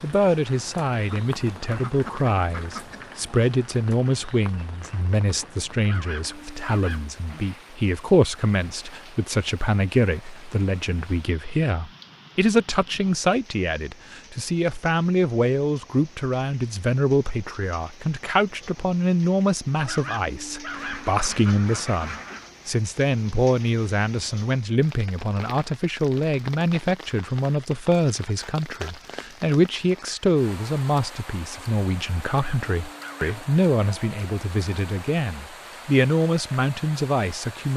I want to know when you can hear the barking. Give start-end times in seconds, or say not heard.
5.8-7.1, 19.9-21.1, 32.2-33.5.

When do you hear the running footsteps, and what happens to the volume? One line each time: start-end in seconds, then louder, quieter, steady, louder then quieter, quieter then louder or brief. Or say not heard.
not heard.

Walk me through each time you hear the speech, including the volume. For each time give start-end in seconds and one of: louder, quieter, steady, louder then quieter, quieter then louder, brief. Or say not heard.
0.0-37.7 steady.